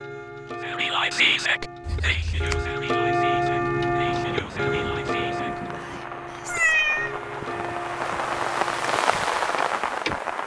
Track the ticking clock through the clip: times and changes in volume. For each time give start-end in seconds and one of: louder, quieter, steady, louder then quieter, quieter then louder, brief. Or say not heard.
0.0-10.2 louder then quieter.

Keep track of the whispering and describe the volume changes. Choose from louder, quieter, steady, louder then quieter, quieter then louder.
quieter.